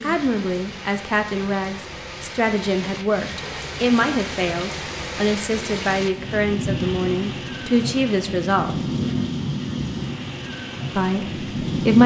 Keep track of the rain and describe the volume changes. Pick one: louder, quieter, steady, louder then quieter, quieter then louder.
louder.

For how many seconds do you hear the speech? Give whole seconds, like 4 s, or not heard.
10 s.